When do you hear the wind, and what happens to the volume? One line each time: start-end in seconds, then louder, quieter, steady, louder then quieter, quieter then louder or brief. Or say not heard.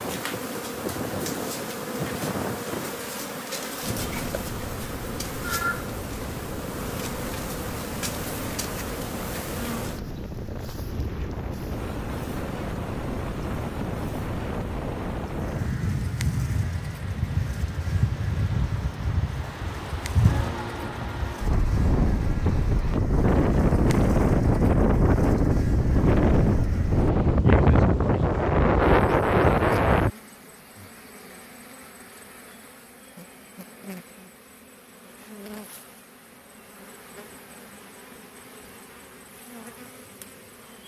0.0-30.1 louder.